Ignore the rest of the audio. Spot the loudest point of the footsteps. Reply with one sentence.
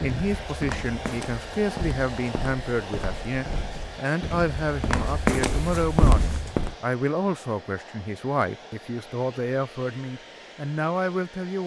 The volume of the footsteps peaks at 5 seconds.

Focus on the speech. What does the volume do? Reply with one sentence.
The loudness of the speech stays about the same.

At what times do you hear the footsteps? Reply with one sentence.
You can hear the footsteps from 0.0 to 6.8 s.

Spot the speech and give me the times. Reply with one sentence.
The speech can be heard from 0.0 to 11.6 s.